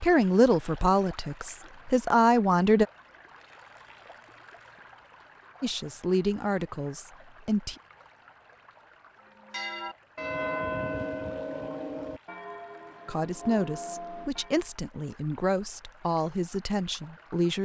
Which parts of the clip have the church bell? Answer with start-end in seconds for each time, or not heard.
9.3-14.7.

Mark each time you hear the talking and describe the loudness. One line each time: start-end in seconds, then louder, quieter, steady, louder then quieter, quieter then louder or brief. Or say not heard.
0.0-2.9 brief
5.6-7.8 brief
13.1-17.5 steady.